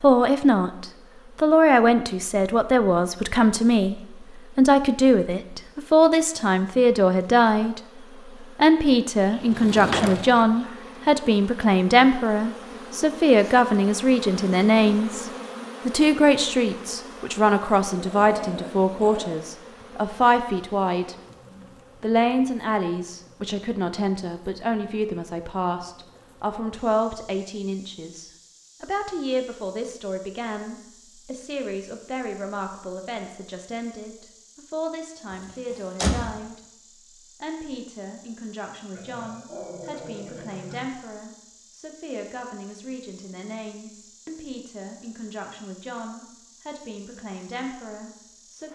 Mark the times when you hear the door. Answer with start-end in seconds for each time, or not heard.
9.4-10.6, 35.3-36.4.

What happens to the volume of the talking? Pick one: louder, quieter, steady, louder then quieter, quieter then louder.
quieter.